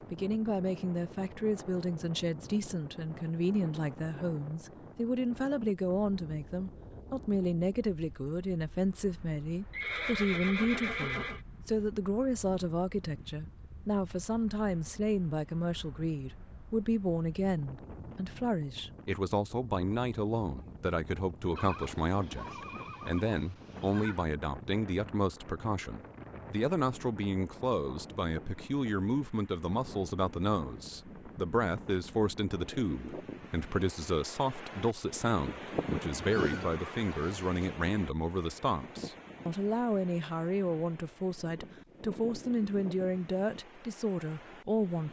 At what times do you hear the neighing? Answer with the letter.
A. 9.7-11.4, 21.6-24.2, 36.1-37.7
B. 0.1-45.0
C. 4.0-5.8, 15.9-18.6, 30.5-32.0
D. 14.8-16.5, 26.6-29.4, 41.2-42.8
A.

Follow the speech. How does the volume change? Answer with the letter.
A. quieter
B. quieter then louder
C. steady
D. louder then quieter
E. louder
C.